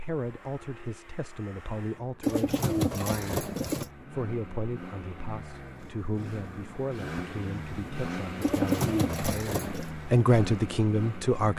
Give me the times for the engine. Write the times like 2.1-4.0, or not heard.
0.0-11.5.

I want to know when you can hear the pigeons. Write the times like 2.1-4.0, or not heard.
2.2-3.9, 8.4-9.9.